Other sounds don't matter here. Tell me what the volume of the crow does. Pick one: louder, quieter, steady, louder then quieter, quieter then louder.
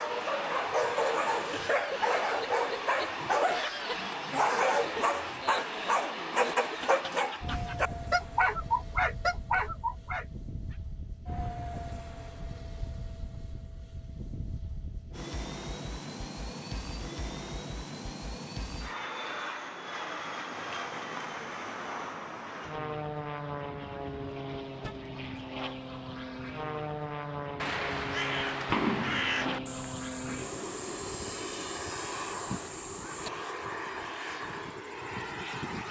quieter.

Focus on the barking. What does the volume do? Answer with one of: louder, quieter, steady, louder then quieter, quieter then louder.
steady.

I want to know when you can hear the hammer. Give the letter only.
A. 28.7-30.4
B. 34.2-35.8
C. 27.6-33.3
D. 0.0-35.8
A.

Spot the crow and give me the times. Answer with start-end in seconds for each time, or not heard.
27.6-33.3.